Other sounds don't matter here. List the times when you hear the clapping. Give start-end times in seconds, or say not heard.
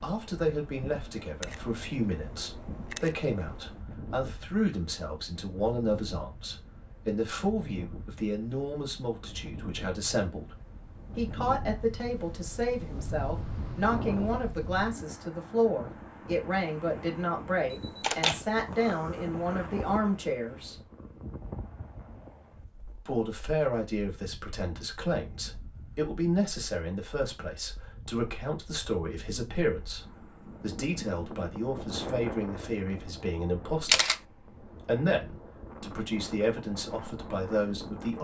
not heard.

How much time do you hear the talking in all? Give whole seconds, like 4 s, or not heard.
35 s.